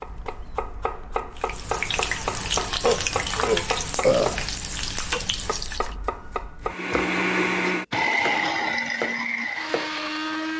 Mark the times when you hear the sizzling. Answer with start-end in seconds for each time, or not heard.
1.4-6.0.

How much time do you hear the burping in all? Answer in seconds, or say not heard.
2 s.